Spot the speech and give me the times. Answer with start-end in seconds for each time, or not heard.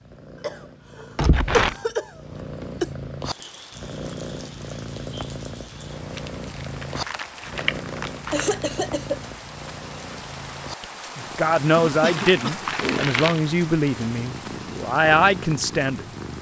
11.2-16.1.